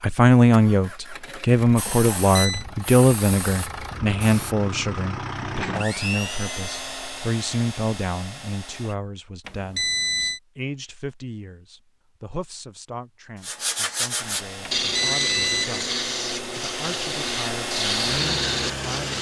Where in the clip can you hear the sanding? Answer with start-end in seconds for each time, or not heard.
13.4-19.1.